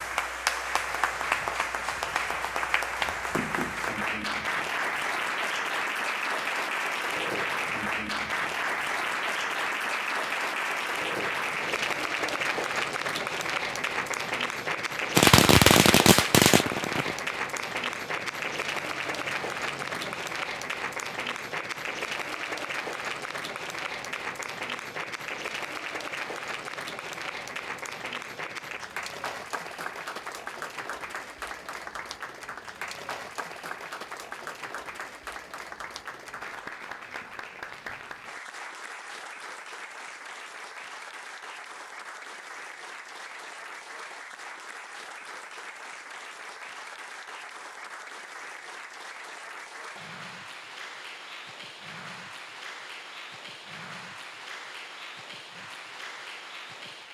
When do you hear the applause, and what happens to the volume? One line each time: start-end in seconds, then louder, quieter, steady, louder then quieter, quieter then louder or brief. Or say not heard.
0.0-57.0 quieter.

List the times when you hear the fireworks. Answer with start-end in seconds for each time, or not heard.
15.2-20.1.